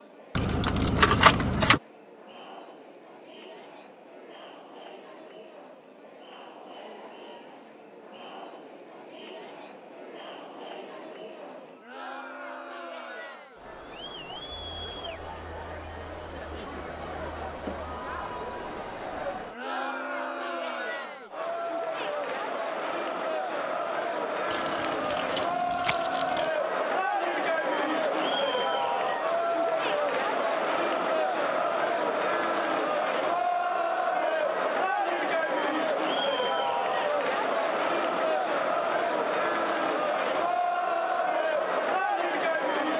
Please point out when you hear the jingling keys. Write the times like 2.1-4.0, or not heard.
0.3-1.8, 24.5-26.5.